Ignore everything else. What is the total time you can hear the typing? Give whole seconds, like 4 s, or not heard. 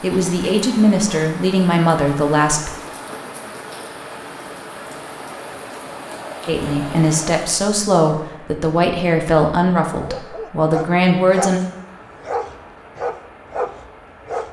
not heard.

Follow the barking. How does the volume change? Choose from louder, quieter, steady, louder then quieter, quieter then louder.
steady.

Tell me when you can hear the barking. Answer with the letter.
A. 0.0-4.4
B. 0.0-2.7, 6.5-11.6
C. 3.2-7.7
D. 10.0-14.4
D.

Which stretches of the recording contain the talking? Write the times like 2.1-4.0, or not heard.
0.0-2.7, 6.5-11.6.